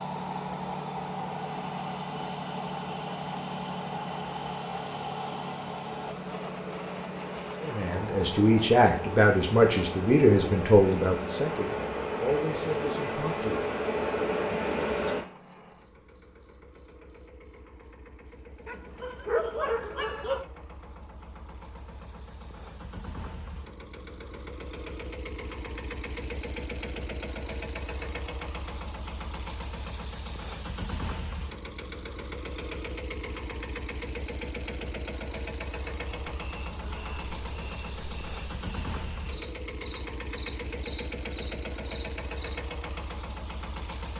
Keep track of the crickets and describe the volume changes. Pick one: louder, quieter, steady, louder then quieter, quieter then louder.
louder then quieter.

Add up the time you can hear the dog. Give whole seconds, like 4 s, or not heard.
2 s.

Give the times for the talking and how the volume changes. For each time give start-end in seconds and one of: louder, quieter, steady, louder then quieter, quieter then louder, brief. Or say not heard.
7.6-13.6 quieter.